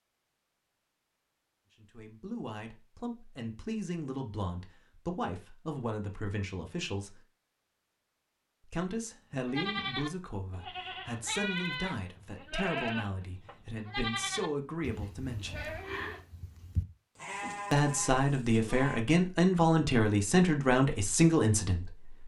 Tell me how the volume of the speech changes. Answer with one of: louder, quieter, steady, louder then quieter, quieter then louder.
louder.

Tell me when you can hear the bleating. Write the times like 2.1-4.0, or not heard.
9.4-19.1.